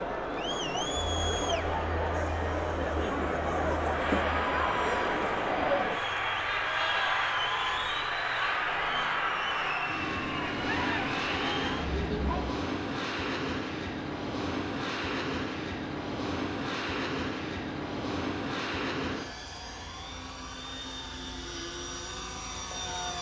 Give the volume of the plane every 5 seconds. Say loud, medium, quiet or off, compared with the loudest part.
loud, loud, loud, loud, medium.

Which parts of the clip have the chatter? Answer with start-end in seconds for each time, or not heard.
0.0-12.6.